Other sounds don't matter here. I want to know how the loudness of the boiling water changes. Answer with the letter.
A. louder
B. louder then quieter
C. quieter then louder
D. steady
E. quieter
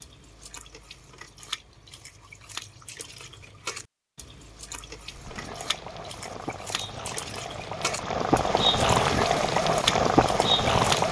A.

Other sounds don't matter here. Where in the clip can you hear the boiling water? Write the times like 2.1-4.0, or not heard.
5.0-11.0.